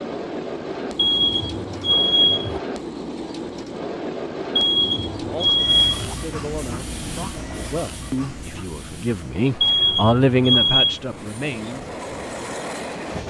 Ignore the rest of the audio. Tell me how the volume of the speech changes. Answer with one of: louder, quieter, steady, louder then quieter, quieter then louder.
louder.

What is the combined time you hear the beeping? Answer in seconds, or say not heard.
5 s.